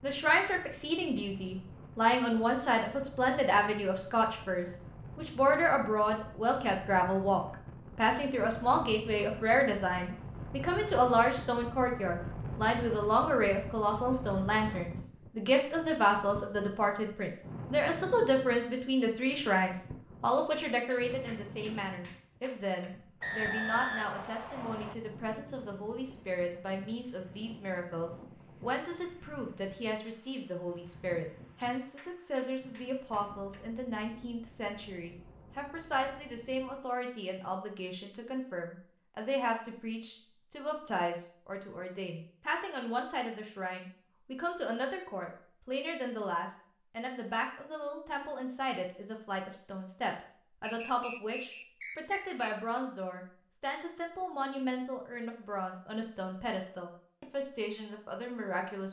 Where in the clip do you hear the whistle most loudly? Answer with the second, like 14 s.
24 s.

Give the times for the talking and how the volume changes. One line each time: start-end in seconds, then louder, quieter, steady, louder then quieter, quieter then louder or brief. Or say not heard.
0.0-58.8 quieter.